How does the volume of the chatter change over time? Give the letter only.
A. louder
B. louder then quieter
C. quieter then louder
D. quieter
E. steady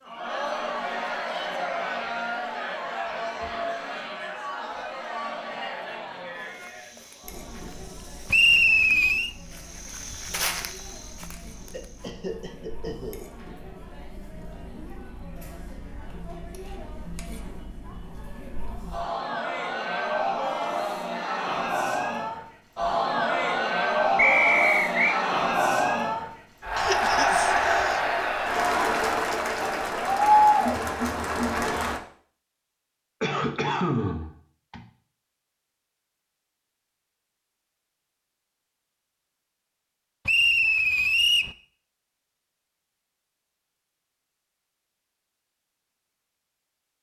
C.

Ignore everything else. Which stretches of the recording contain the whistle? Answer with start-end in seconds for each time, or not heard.
8.3-9.3, 24.1-25.2, 40.2-41.5.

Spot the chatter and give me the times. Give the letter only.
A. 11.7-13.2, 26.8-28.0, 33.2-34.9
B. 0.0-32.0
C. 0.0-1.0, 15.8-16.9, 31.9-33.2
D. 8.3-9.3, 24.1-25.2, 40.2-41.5
B.